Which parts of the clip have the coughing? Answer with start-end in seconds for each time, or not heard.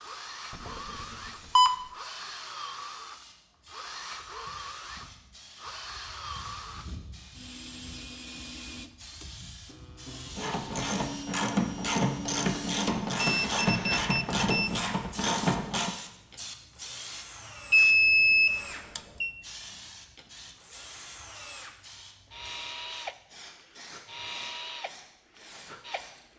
not heard.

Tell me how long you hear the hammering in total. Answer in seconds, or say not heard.
not heard.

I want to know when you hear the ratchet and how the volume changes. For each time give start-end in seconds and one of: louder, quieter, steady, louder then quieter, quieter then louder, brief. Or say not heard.
10.3-15.9 steady.